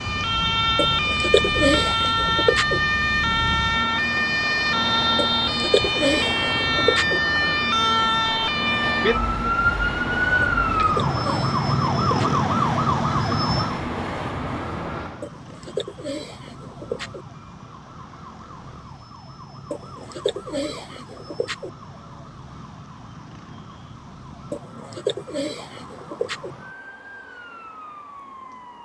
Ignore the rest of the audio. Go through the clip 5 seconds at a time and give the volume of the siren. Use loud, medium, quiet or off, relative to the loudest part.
loud, loud, loud, quiet, quiet, quiet.